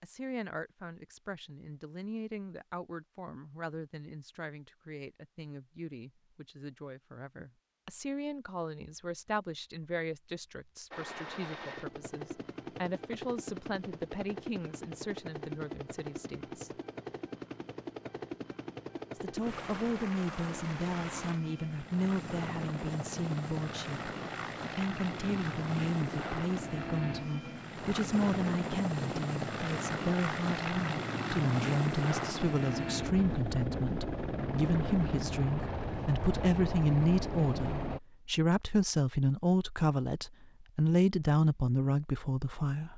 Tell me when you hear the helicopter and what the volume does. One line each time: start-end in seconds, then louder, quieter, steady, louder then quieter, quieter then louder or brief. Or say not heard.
10.9-38.0 louder.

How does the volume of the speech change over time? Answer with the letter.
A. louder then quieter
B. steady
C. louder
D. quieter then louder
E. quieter
C.